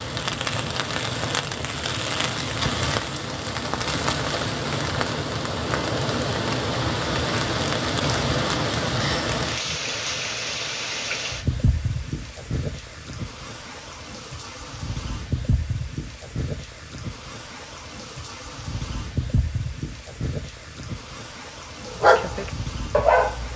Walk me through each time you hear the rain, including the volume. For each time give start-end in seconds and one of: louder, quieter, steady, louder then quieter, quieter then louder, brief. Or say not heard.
0.0-23.5 quieter.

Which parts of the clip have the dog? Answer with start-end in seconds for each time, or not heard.
21.9-23.5.